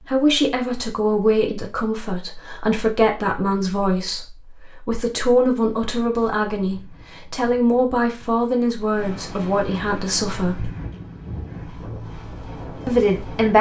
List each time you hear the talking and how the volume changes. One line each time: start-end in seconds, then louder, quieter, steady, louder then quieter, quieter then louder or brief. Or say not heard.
0.0-10.7 steady
12.8-13.5 brief.